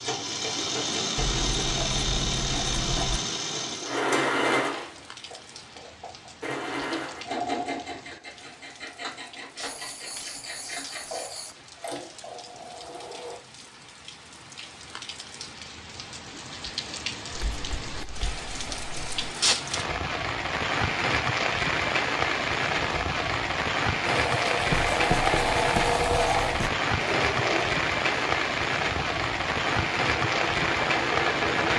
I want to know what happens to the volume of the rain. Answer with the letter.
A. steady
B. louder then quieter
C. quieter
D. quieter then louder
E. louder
E.